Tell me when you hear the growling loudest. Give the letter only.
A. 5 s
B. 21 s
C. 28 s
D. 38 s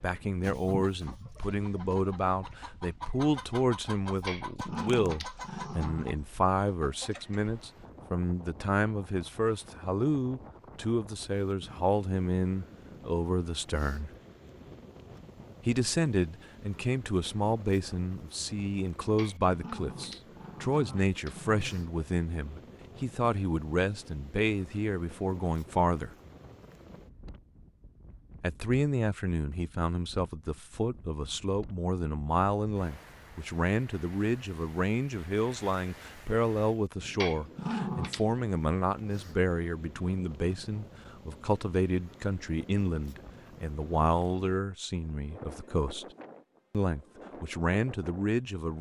D.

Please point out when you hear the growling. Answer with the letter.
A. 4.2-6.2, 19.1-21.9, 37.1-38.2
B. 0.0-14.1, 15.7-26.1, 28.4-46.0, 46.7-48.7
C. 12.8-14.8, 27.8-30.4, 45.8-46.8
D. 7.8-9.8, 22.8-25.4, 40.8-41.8
A.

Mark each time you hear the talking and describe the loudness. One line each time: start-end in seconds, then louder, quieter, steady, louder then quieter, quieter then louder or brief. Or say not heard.
0.0-14.1 steady
15.7-26.1 steady
28.4-46.0 steady
46.7-48.7 brief.